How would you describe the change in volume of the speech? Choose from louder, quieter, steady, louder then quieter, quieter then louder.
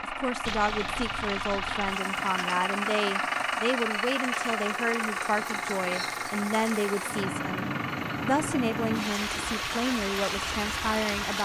steady.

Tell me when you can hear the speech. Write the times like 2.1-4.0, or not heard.
0.0-11.3.